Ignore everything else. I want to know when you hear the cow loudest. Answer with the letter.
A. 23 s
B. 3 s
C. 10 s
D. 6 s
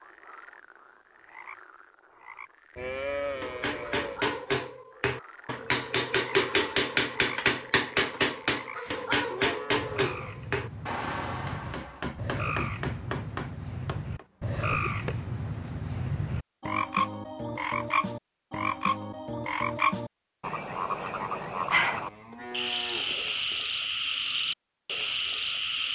B.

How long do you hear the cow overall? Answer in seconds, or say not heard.
5 s.